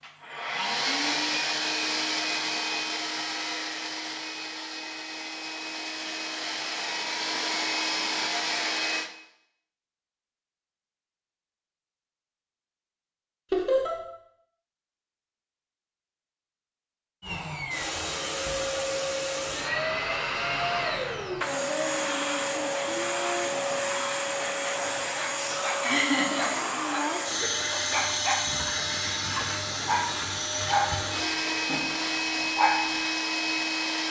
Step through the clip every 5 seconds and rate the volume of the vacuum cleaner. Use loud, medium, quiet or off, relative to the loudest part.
loud, loud, off, loud, loud, loud, loud.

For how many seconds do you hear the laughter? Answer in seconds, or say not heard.
2 s.